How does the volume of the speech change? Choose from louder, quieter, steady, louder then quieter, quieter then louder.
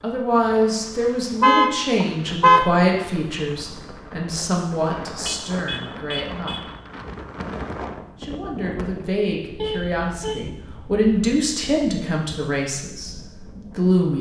quieter then louder.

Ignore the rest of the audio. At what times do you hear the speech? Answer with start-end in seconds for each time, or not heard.
0.0-6.7, 8.2-14.1.